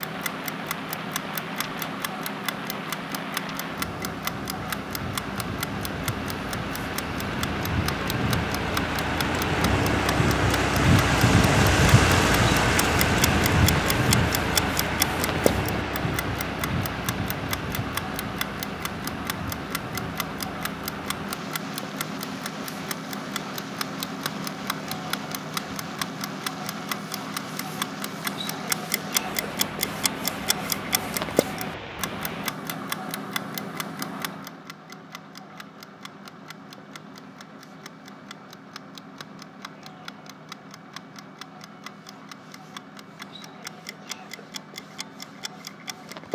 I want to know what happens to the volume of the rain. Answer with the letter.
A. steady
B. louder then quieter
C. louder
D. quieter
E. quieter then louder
B.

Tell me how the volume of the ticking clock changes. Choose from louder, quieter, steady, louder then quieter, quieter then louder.
quieter.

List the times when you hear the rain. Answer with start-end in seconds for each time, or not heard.
0.0-32.5.